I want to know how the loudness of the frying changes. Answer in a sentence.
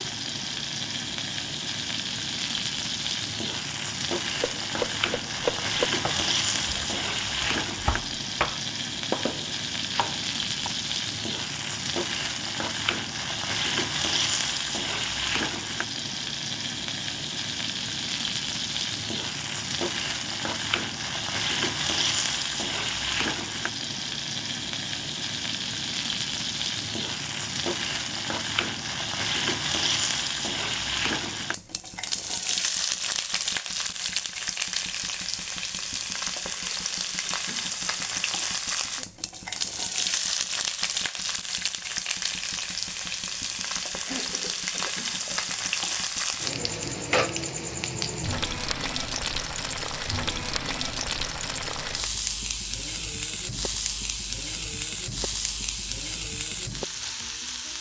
The loudness of the frying stays about the same.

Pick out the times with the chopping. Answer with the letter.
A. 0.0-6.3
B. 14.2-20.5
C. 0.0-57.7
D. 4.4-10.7
D.